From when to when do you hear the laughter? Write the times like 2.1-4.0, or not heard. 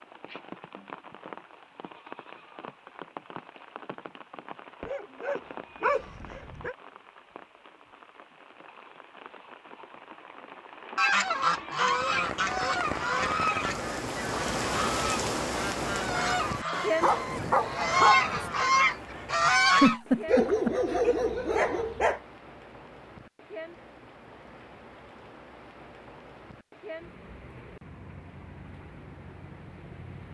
19.8-20.8.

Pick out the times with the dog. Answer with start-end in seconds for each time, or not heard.
4.8-6.8, 17.0-18.5, 20.2-22.2.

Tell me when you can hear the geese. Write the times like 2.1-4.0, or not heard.
10.9-20.0.